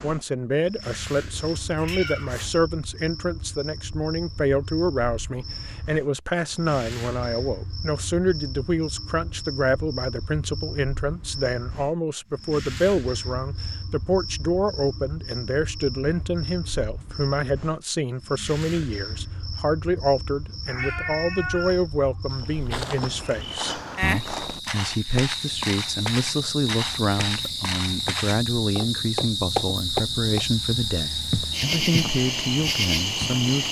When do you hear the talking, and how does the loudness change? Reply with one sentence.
The talking can be heard from 0.0 to 33.6 s, at a steady volume.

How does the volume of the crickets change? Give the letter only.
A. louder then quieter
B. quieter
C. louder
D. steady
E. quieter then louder
C.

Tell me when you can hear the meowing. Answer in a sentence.
You can hear the meowing from 1.4 to 2.5 s and from 20.6 to 21.9 s.